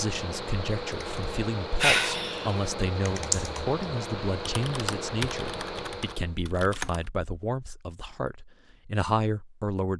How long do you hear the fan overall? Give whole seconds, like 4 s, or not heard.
6 s.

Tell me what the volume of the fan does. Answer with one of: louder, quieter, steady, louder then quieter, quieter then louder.
steady.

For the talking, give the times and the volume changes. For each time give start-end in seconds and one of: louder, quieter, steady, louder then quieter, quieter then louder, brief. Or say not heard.
0.0-9.9 steady.